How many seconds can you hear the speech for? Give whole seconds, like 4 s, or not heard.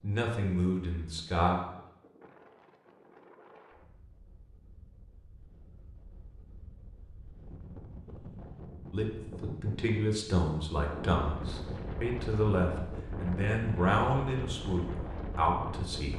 9 s.